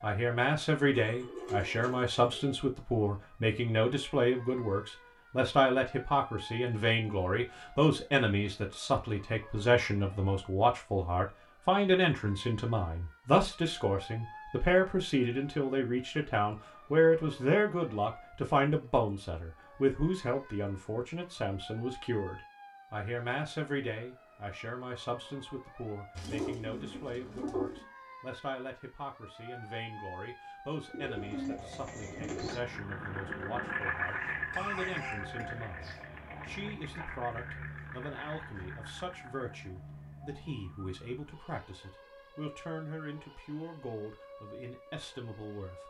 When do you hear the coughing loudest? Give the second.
35 s.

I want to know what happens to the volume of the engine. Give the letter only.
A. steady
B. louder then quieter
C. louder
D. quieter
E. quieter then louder
D.